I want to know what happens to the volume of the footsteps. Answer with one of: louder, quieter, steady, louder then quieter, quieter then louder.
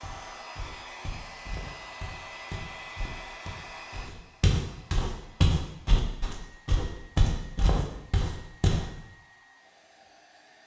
louder.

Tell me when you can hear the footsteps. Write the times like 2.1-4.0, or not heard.
0.0-8.9.